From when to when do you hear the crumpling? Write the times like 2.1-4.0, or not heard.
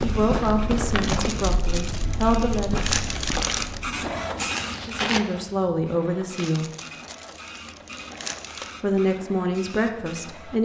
1.0-3.8, 6.3-8.8.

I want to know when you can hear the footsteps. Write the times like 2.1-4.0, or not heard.
0.0-5.2.